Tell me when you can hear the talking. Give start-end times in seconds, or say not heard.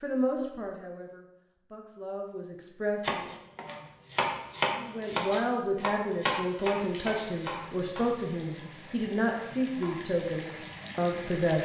0.0-3.2, 4.8-11.6.